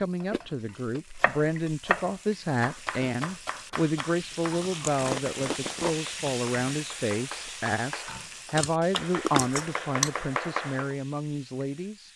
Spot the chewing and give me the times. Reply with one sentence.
You can hear the chewing from 0.3 to 2.0 s, from 4.3 to 6.1 s and from 8.2 to 10.1 s.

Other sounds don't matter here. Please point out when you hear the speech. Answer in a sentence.
The speech can be heard from 0.0 to 12.1 s.